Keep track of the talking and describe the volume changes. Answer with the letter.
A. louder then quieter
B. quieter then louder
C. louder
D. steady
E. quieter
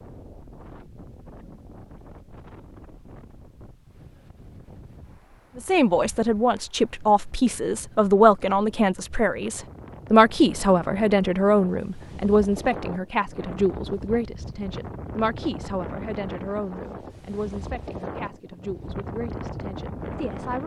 E.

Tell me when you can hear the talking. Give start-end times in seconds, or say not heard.
5.5-20.6.